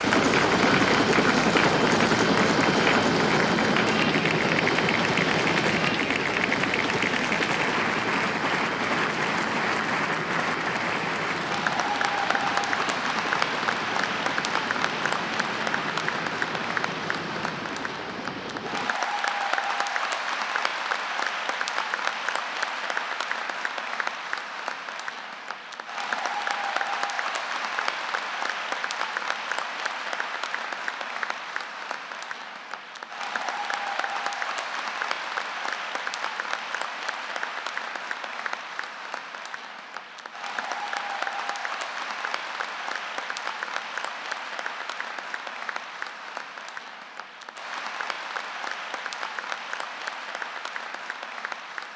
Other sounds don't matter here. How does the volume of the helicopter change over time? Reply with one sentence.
The loudness of the helicopter goes down.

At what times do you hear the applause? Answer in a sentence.
You can hear the applause from 0.0 to 51.9 s.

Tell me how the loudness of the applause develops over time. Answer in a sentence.
The loudness of the applause goes down.